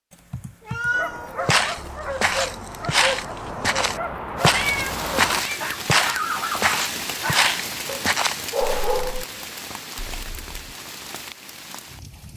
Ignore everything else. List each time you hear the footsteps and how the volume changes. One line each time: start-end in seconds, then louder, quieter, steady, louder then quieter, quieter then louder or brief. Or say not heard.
1.4-9.2 steady.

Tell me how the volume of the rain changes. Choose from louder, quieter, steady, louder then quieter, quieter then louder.
quieter.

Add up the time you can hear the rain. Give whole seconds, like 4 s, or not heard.
8 s.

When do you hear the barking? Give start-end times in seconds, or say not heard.
0.9-9.4.